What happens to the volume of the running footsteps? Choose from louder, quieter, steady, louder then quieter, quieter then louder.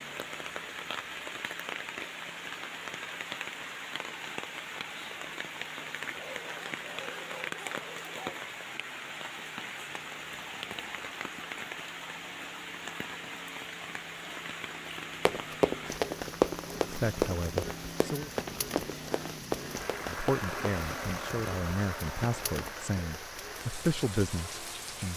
quieter.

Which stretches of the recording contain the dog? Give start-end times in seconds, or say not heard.
6.1-8.4.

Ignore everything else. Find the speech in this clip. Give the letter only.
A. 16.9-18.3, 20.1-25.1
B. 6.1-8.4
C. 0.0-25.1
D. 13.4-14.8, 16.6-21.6
A.